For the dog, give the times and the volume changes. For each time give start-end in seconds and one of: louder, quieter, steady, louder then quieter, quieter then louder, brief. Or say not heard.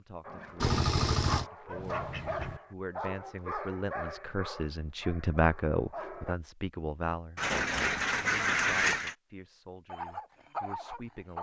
0.2-6.3 quieter
9.8-11.3 brief.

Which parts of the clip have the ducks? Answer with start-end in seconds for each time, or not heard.
0.6-2.6, 7.3-9.2.